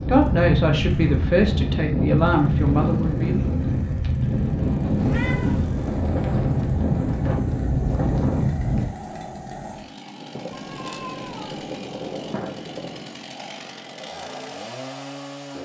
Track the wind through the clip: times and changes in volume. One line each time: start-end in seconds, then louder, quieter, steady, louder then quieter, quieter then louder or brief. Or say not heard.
0.0-8.9 steady.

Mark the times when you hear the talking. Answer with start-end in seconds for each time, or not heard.
0.0-3.5.